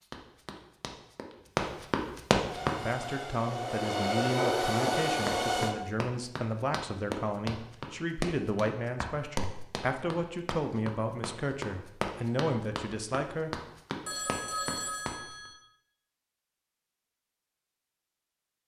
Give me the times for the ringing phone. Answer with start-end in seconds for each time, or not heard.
14.1-15.6.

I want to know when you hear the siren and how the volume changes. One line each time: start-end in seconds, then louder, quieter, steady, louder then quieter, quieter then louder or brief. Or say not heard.
not heard.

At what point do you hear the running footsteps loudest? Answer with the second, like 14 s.
2 s.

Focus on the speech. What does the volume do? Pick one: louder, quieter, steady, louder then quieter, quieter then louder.
steady.